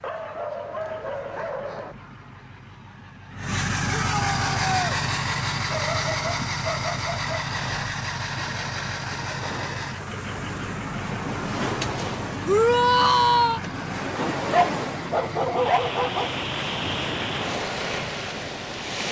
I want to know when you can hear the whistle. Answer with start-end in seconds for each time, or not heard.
not heard.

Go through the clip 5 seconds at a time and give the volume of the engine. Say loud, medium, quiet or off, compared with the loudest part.
loud, loud, medium, medium.